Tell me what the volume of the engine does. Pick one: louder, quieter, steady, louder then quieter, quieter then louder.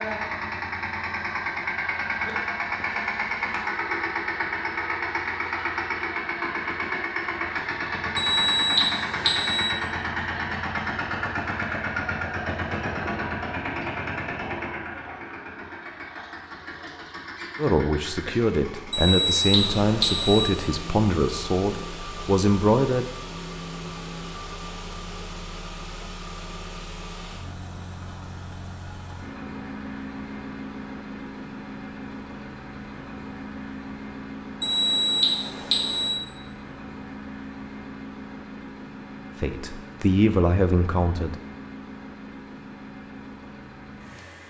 quieter.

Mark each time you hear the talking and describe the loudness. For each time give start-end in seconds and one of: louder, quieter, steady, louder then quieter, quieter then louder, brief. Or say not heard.
17.6-23.1 steady
39.4-41.4 brief.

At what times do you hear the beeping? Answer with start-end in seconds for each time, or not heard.
8.2-9.7, 18.9-20.4, 34.6-36.1.